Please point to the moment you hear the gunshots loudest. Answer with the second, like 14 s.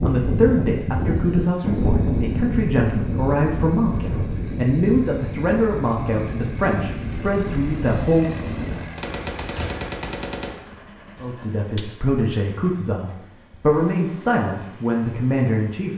10 s.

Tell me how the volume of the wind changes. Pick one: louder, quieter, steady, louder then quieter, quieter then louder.
quieter.